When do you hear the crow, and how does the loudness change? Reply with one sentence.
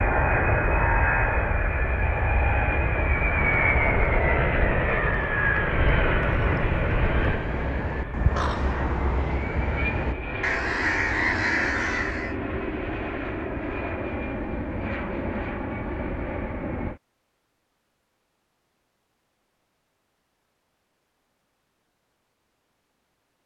The crow can be heard from 6.2 to 12.3 s, getting louder.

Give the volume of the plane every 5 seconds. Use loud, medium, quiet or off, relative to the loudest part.
loud, loud, medium, medium, off.